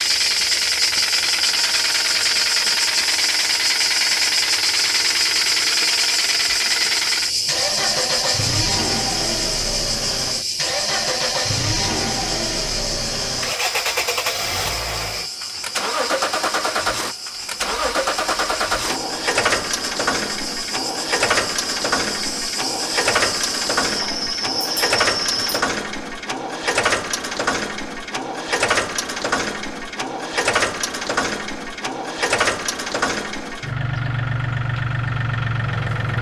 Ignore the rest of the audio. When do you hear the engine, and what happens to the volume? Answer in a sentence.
You can hear the engine from 0.0 to 36.1 s, at a steady volume.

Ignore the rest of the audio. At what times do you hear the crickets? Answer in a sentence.
The crickets can be heard from 0.0 to 25.6 s.